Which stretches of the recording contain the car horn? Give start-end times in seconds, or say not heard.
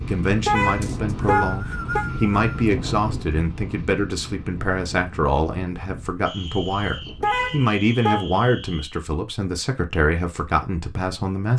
0.5-2.0, 7.2-8.2.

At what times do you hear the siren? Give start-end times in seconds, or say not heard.
not heard.